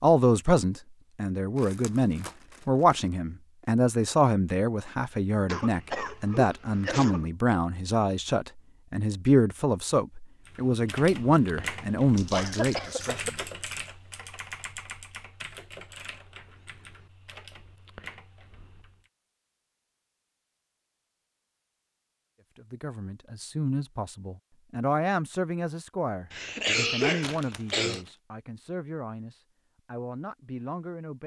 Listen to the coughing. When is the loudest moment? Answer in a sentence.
The volume of the coughing peaks at 27 seconds.